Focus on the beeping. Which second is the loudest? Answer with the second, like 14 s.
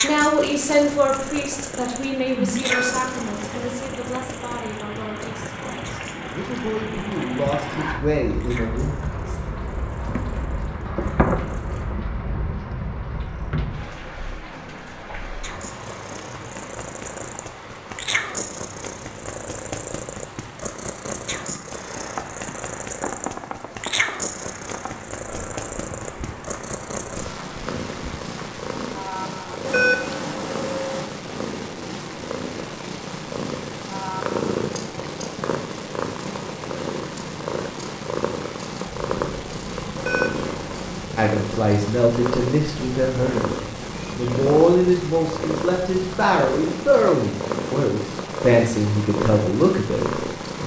30 s.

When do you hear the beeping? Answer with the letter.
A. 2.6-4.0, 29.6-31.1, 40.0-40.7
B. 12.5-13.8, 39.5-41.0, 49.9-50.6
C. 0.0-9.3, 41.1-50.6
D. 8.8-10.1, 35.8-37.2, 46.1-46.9
A.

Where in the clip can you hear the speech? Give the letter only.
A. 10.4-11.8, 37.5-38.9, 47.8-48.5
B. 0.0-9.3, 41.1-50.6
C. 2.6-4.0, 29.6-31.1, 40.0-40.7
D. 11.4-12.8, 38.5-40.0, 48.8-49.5
B.